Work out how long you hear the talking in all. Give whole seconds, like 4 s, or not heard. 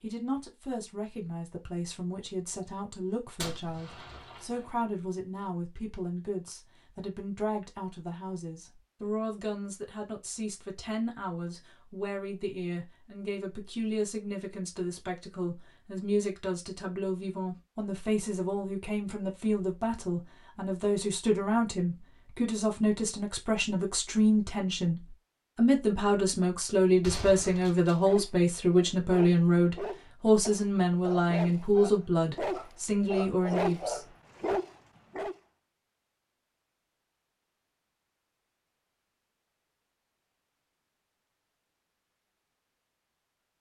34 s.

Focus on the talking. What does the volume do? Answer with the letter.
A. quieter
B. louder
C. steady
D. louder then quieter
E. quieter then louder
B.